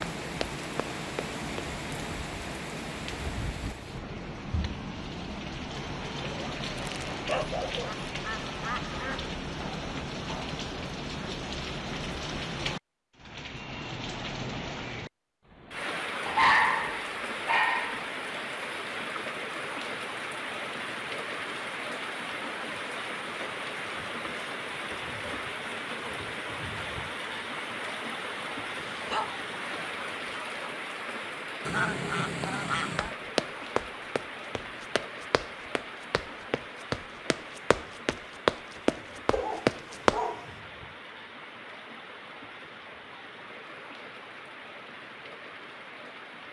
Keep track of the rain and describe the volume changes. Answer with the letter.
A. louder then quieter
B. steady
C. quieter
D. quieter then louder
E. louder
C.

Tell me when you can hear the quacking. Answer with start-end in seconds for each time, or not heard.
7.8-9.3, 31.6-33.1.